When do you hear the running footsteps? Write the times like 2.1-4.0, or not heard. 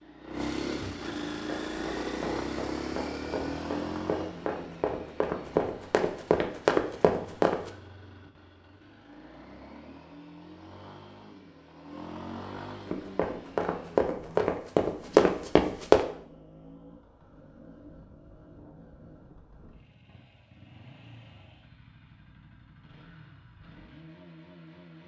1.3-7.7, 12.8-16.1.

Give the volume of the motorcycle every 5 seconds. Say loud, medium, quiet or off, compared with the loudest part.
loud, quiet, medium, quiet, quiet.